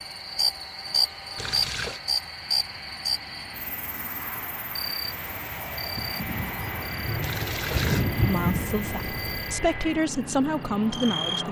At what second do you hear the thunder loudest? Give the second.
8 s.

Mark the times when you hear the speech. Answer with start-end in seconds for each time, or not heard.
8.2-11.4.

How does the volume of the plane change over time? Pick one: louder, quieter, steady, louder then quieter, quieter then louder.
louder.